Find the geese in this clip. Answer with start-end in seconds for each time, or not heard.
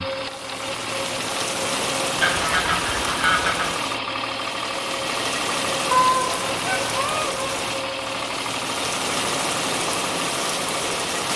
2.1-3.8, 5.9-7.5.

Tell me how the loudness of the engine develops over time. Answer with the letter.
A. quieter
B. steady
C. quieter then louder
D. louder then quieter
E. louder
B.